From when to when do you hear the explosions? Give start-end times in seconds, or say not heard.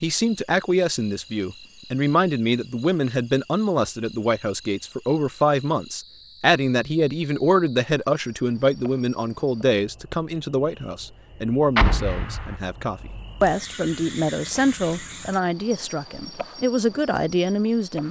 11.8-12.6.